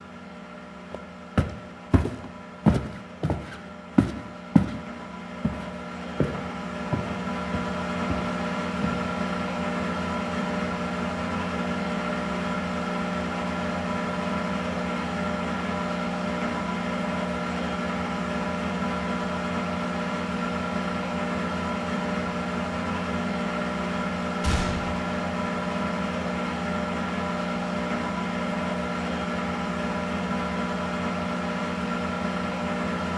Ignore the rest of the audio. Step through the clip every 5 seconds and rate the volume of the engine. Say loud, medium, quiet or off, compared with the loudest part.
quiet, loud, loud, loud, loud, loud, loud.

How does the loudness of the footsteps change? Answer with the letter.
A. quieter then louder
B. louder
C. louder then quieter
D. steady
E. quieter
E.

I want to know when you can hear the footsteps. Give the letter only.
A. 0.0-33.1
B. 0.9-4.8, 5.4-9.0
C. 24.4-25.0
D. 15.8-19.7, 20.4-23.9
B.